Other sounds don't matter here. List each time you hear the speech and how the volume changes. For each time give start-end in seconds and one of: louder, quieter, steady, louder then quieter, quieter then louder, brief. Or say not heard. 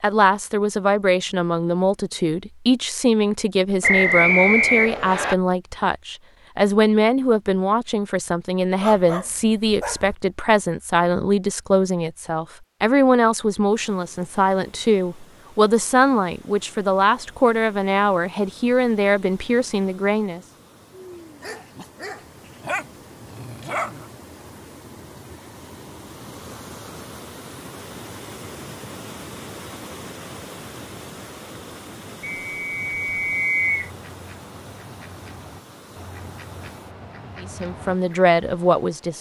0.0-20.4 steady
37.4-39.1 brief.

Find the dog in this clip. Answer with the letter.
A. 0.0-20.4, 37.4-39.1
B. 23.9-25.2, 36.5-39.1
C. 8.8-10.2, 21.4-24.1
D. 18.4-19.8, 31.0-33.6
C.